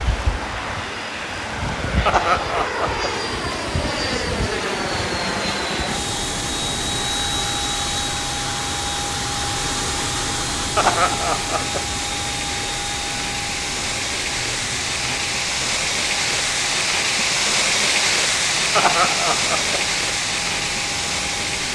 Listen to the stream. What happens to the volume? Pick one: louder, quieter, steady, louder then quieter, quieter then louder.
louder.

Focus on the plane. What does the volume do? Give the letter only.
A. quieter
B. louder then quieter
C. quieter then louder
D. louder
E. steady
A.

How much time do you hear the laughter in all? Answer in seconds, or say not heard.
3 s.